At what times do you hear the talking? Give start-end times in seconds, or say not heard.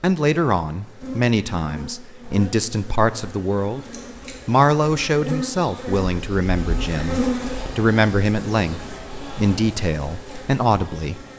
0.0-3.8, 4.5-11.2.